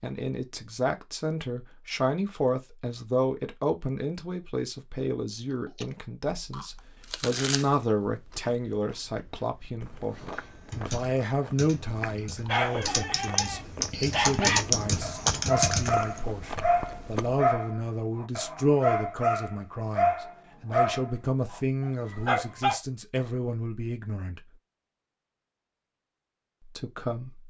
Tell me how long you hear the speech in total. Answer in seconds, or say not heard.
25 s.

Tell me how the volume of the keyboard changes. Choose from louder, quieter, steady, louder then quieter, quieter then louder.
quieter then louder.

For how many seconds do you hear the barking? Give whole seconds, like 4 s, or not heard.
10 s.